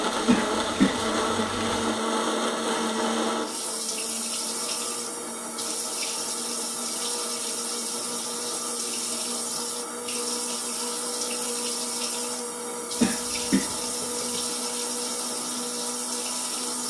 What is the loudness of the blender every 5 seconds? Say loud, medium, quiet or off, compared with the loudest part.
loud, medium, medium, medium.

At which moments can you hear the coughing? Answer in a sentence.
The coughing can be heard from 0.2 to 1.2 s and from 13.0 to 14.6 s.